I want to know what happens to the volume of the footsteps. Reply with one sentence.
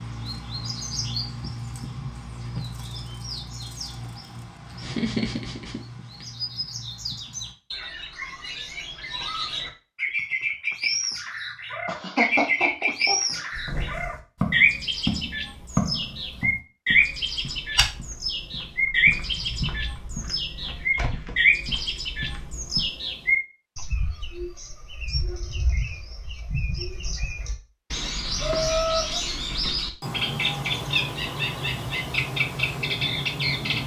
The volume of the footsteps goes down.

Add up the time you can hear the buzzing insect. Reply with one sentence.
You can't hear the buzzing insect here.